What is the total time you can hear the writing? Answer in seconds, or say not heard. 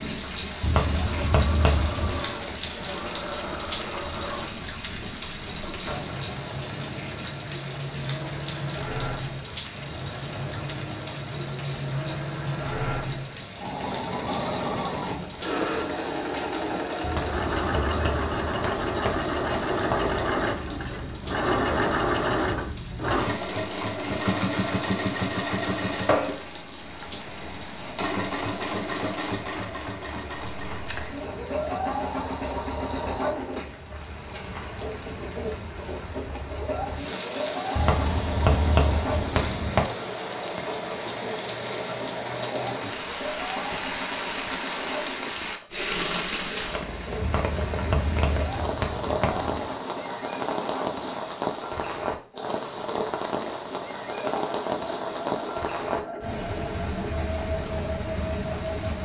9 s.